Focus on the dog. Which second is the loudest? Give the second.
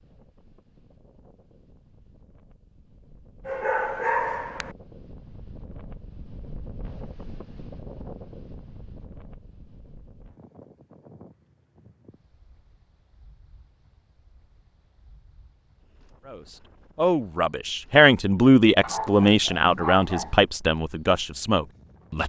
4 s.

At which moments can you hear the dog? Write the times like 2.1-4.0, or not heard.
3.5-4.8, 18.8-20.4.